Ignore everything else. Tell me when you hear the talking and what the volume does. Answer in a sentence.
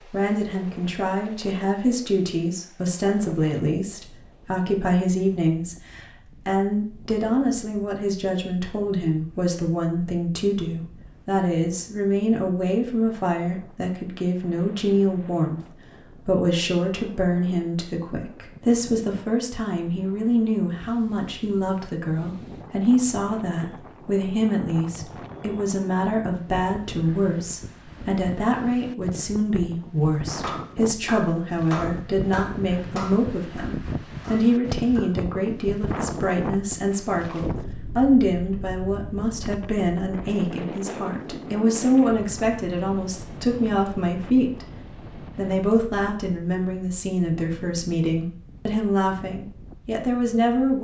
The talking can be heard from 0.1 to 15.6 s, at a steady volume; from 16.2 to 44.6 s, at a steady volume; and from 45.4 to 50.7 s, at a steady volume.